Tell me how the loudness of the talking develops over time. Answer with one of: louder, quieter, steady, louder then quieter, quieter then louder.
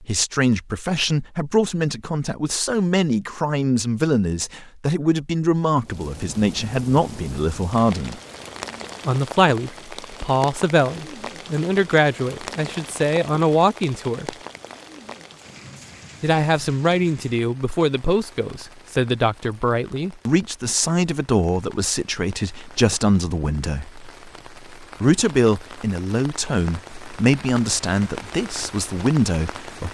steady.